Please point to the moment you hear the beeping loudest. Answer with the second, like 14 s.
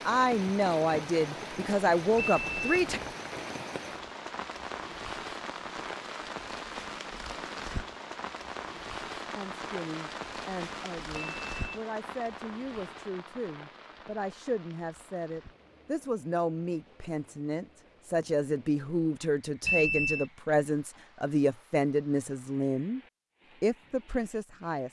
20 s.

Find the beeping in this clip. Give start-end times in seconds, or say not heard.
2.1-3.1, 11.1-11.7, 19.6-20.2.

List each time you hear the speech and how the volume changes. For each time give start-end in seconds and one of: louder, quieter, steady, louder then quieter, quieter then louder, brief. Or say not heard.
0.1-3.0 brief
9.3-23.0 louder
23.6-24.8 brief.